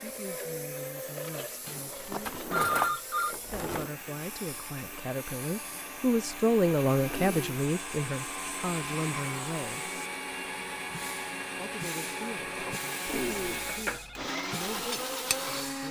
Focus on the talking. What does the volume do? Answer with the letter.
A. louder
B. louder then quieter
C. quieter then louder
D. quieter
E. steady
B.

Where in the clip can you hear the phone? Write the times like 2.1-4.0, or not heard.
1.6-3.4, 7.0-7.5, 13.1-14.2.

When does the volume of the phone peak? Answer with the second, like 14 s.
3 s.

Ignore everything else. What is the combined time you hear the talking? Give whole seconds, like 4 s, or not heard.
14 s.